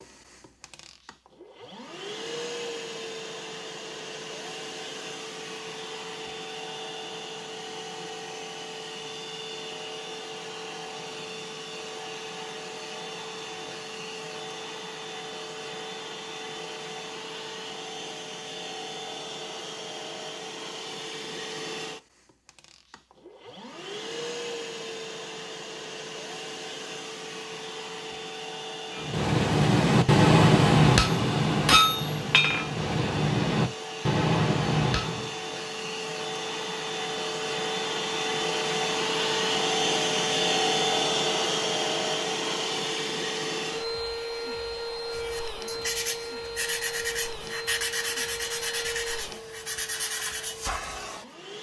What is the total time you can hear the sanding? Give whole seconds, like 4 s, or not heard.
6 s.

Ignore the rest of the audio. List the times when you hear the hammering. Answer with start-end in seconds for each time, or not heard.
28.9-35.4.